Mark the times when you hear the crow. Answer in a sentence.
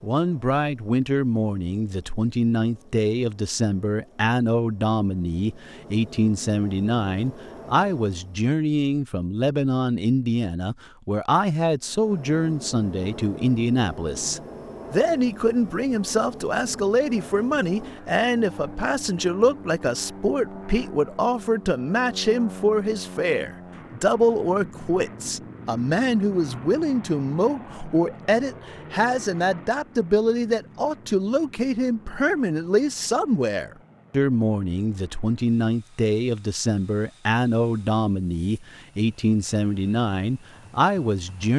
The crow can't be heard in this clip.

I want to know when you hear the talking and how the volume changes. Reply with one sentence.
You can hear the talking from 0.0 to 41.5 s, at a steady volume.